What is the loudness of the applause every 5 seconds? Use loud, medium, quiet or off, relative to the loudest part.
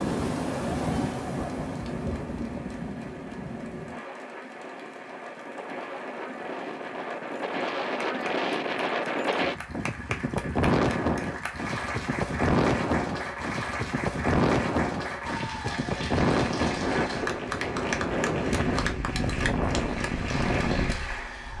quiet, quiet, loud, loud, loud.